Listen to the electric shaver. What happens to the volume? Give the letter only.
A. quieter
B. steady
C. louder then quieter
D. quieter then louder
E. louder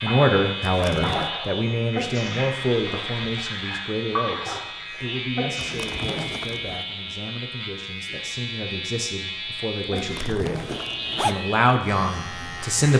B.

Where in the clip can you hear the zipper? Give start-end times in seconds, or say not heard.
0.6-1.3, 5.5-6.8, 9.9-11.4.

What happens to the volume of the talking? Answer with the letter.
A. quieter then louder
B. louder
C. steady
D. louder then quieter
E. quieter
A.